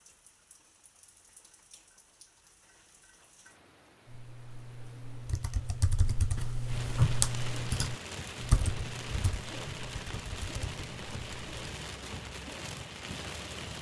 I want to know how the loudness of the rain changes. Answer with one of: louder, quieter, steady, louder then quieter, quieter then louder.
louder.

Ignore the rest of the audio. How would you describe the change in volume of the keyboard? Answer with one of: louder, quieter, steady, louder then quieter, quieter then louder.
louder then quieter.